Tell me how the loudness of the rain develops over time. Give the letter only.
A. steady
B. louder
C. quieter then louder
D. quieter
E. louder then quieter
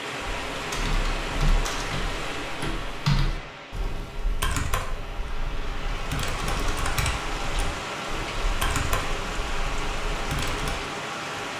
C.